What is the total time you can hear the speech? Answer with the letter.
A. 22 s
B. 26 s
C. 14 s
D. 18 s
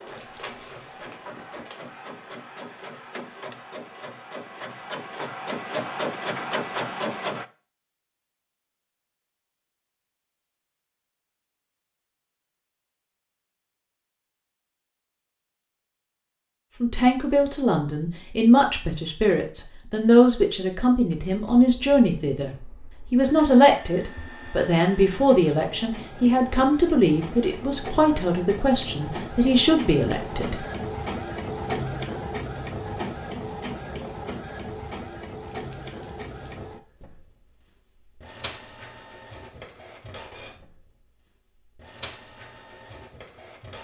C.